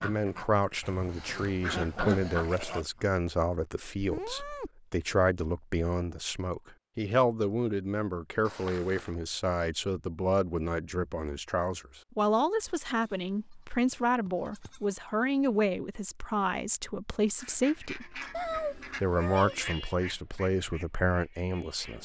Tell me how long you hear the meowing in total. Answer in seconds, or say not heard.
3 s.